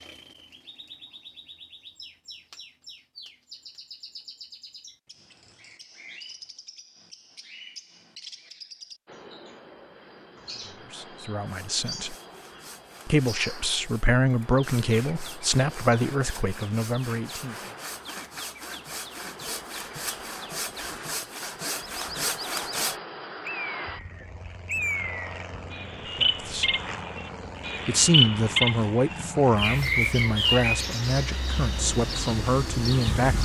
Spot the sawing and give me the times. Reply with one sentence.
You can hear the sawing from 11.4 to 23.0 s.